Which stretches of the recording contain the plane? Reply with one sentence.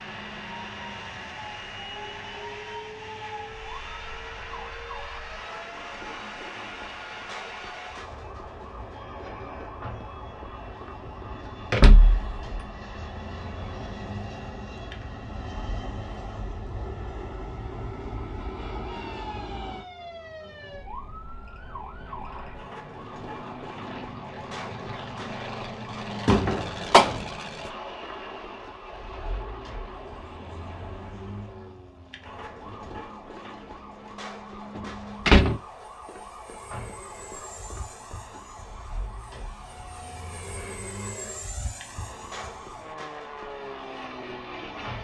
You can hear the plane from 0.0 to 44.9 s.